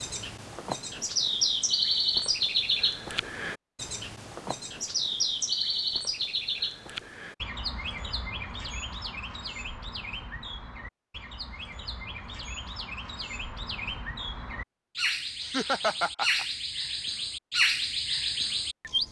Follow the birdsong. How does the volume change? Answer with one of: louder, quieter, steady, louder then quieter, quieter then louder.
quieter then louder.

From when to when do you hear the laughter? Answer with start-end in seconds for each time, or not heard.
15.4-16.4.